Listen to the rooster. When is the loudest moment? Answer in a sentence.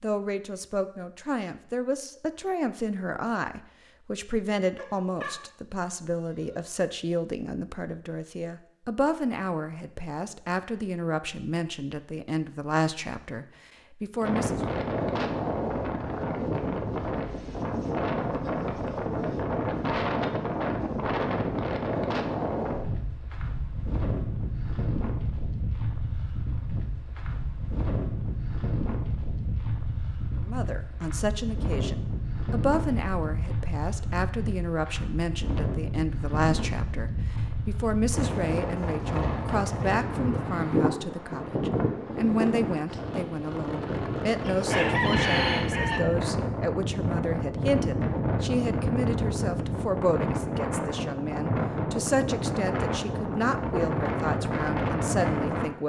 The volume of the rooster peaks at 45 seconds.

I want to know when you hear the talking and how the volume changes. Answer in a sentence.
The talking can be heard from 0.0 to 14.6 s, at a steady volume; and from 30.4 to 55.8 s, at a steady volume.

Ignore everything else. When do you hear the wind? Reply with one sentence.
The wind can be heard from 14.2 to 55.6 s.